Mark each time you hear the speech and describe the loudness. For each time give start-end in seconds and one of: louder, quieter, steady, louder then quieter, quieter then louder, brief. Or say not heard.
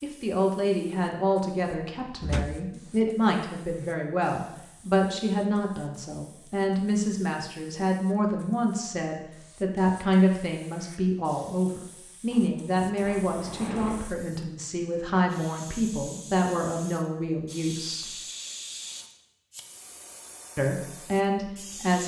0.0-18.1 steady
20.6-22.0 brief.